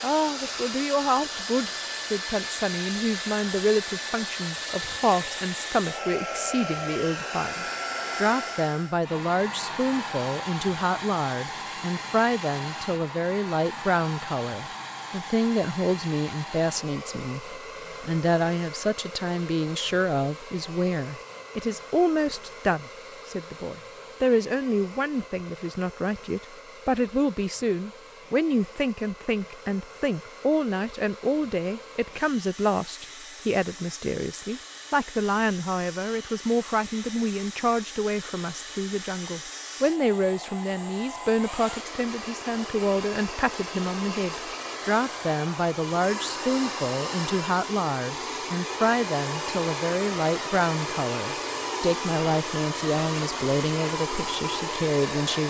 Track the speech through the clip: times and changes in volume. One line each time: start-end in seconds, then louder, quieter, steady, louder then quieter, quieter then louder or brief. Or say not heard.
0.0-55.4 steady.